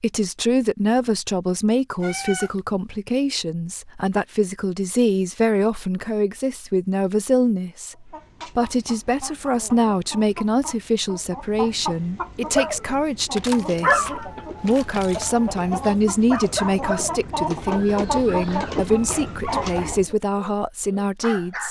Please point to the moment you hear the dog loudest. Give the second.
14 s.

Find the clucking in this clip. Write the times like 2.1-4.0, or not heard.
8.1-20.1.